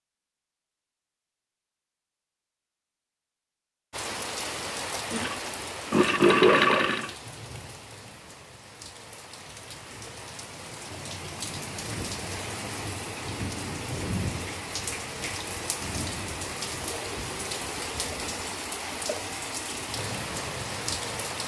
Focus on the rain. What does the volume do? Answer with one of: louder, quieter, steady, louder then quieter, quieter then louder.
quieter then louder.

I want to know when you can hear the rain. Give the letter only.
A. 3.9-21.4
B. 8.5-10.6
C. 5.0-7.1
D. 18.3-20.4
A.